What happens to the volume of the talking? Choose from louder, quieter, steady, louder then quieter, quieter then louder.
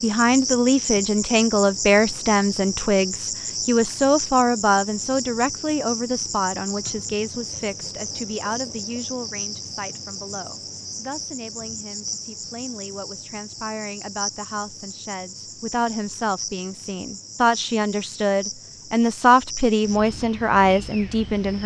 quieter then louder.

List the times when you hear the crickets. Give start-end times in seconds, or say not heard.
0.0-21.6.